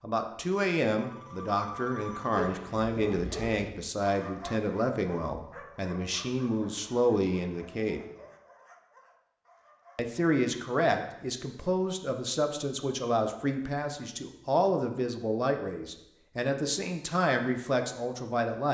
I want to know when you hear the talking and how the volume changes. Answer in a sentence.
The talking can be heard from 0.0 to 8.0 s, at a steady volume; and from 9.9 to 18.6 s, at a steady volume.